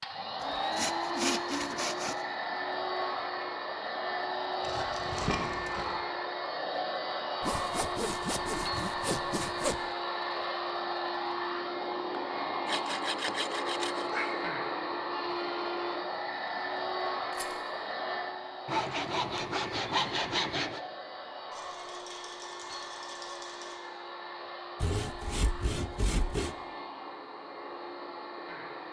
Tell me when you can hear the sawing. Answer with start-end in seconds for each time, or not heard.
0.4-2.2, 7.4-9.8, 12.7-14.5, 18.6-20.8, 24.8-26.6.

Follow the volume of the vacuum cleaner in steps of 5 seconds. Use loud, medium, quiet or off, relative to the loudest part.
loud, loud, loud, loud, medium, medium.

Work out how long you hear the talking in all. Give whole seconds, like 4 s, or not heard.
not heard.